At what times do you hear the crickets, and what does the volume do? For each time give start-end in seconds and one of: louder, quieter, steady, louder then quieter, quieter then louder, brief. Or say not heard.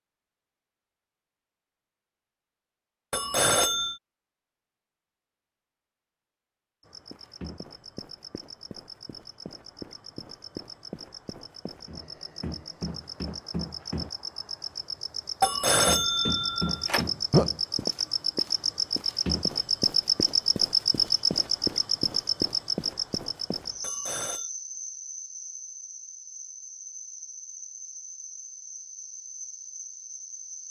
6.8-30.6 louder then quieter.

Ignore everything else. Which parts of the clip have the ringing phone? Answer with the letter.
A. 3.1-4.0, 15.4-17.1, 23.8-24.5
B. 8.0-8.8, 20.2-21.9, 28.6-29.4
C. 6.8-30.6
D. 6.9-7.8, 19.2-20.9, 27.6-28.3
A.